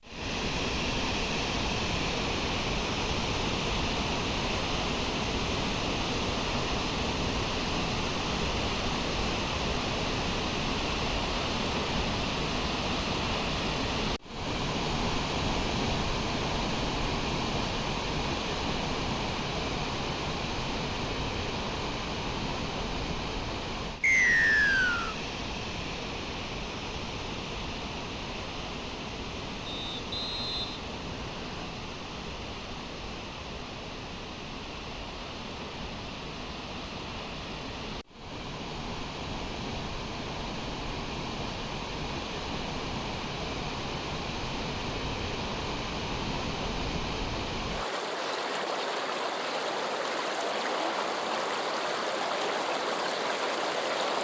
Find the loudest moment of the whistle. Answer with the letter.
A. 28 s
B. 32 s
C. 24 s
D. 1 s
C.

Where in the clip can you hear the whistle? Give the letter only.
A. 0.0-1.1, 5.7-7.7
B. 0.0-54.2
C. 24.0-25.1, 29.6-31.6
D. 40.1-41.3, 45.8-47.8
C.